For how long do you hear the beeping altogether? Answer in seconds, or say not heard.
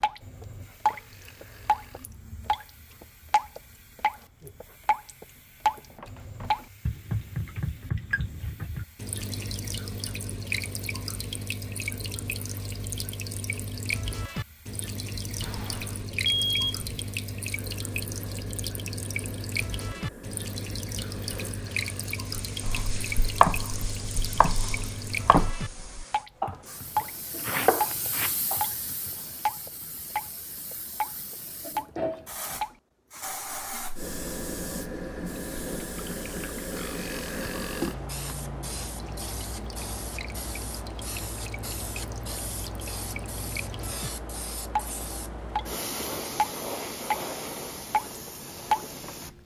2 s.